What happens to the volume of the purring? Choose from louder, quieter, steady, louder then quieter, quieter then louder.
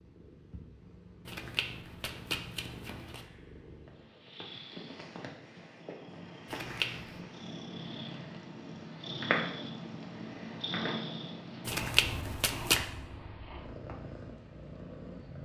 louder then quieter.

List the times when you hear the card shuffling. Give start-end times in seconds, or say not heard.
1.2-3.2, 6.5-7.2, 11.7-12.8.